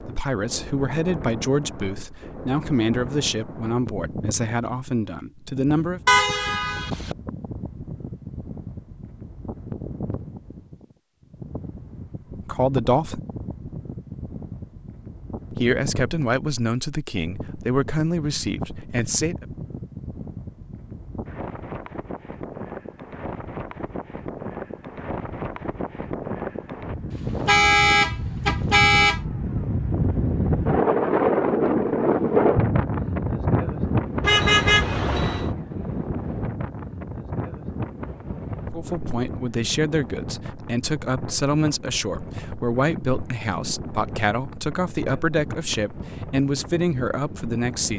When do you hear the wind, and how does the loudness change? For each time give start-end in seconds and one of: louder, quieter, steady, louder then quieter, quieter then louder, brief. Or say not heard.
0.0-47.9 louder then quieter.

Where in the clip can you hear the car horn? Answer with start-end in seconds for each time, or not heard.
6.0-7.2, 27.1-29.2, 34.2-35.5.